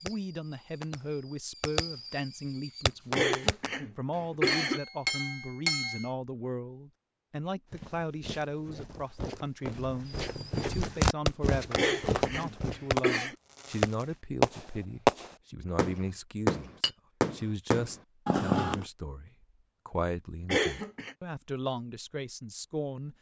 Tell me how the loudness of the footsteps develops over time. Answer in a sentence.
The volume of the footsteps goes up, then down.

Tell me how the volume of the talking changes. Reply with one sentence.
The volume of the talking stays about the same.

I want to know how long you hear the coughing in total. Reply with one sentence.
The coughing can be heard for 4 seconds in total.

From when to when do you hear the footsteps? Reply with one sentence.
The footsteps can be heard from 7.7 to 12.8 s.